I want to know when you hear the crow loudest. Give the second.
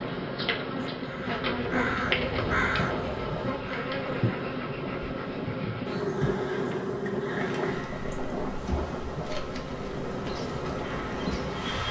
3 s.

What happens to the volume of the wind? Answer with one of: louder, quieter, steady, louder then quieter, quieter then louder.
steady.